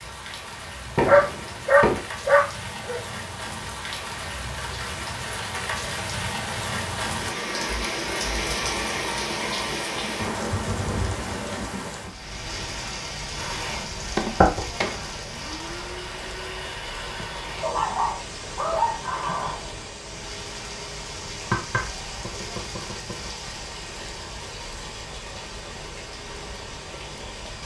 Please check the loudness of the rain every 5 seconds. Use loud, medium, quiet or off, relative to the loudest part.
medium, loud, loud, medium, medium, medium.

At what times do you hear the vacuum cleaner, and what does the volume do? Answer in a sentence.
The vacuum cleaner can be heard from 13.3 to 27.6 s, getting quieter.